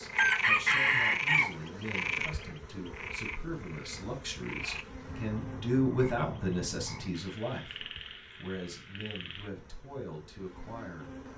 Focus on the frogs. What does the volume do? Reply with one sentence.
The volume of the frogs goes down.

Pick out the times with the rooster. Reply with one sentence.
The rooster can be heard from 0.1 to 1.4 s.